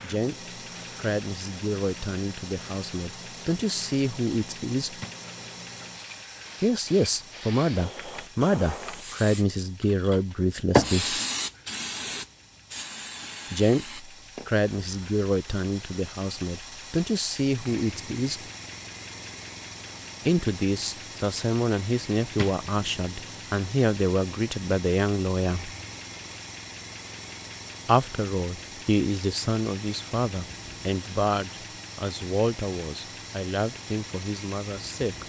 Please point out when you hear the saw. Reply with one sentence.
You can't hear the saw here.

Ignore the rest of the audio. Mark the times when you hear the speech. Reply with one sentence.
You can hear the speech from 0.0 to 5.0 s, from 6.6 to 11.2 s, from 13.5 to 18.4 s, from 20.2 to 25.7 s and from 27.9 to 35.2 s.